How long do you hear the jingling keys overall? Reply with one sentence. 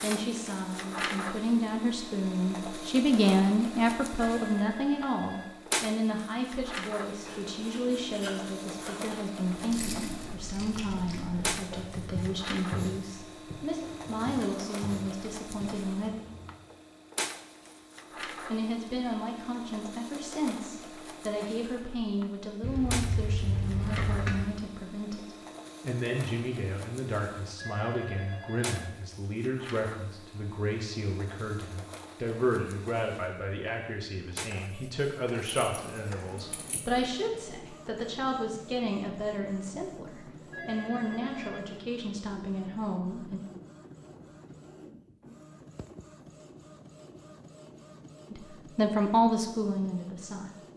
You can hear the jingling keys for 5 seconds altogether.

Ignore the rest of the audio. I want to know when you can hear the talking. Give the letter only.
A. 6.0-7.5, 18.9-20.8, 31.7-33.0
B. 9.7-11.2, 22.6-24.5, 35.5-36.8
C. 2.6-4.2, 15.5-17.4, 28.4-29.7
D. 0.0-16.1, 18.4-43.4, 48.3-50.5
D.